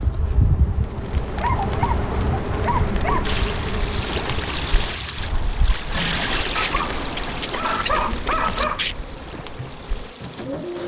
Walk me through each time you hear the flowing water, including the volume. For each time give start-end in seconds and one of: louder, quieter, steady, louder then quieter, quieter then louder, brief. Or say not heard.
3.2-10.8 quieter.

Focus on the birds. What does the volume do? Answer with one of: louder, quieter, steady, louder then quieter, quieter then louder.
quieter.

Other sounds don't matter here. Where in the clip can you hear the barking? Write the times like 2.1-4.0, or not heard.
1.4-3.3, 6.5-8.9.